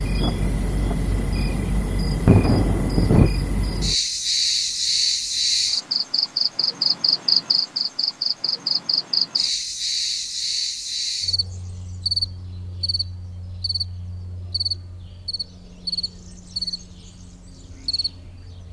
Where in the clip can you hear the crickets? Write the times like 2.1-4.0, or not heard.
0.0-18.6.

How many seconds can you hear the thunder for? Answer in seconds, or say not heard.
3 s.